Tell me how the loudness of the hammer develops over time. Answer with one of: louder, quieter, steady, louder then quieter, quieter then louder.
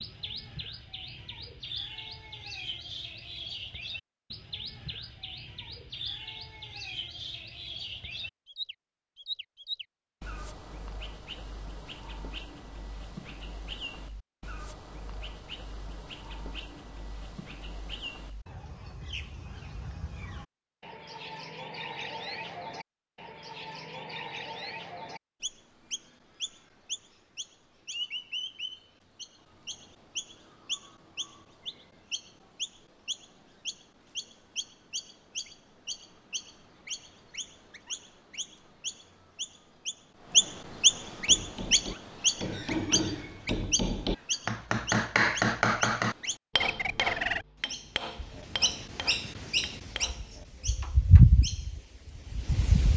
louder then quieter.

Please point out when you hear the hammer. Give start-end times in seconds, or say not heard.
41.2-51.2.